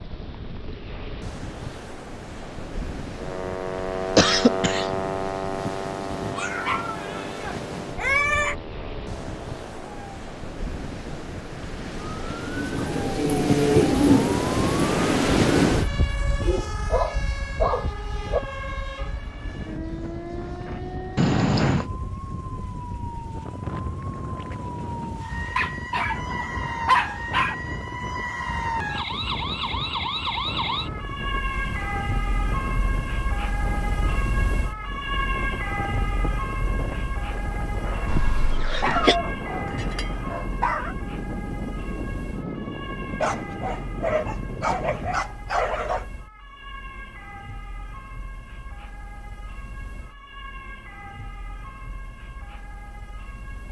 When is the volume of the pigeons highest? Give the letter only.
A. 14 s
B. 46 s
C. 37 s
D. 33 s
A.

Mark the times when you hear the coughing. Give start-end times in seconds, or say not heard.
4.2-4.9, 21.1-21.9, 38.0-39.1.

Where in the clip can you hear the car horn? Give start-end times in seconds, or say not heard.
not heard.